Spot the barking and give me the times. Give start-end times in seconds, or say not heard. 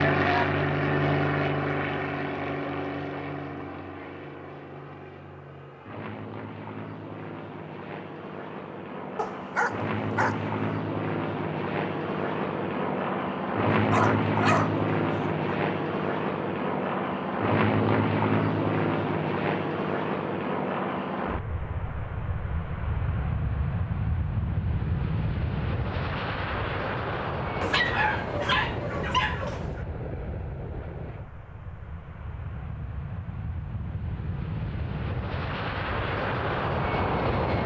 9.2-10.6, 13.7-15.6, 27.6-29.9.